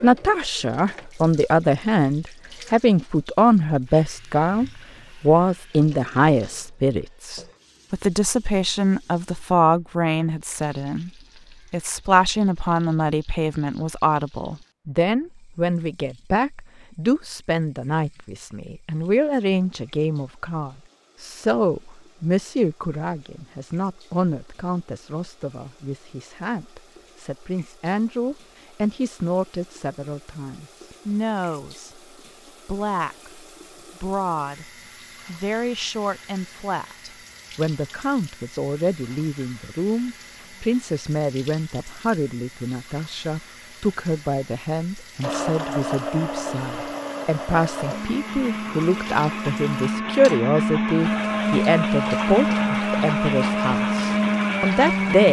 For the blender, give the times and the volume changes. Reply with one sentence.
You can hear the blender from 45.2 to 55.2 s, getting louder.